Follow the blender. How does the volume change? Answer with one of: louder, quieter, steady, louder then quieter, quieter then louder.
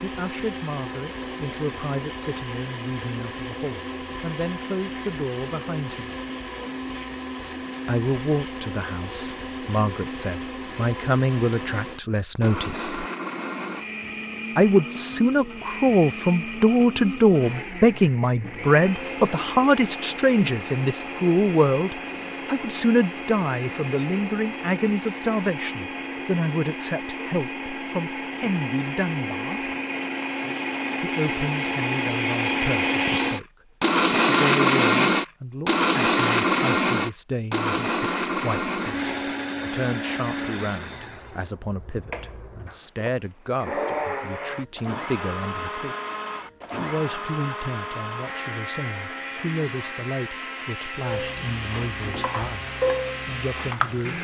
louder then quieter.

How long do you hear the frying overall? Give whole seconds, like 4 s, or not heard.
3 s.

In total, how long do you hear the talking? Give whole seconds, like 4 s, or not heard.
48 s.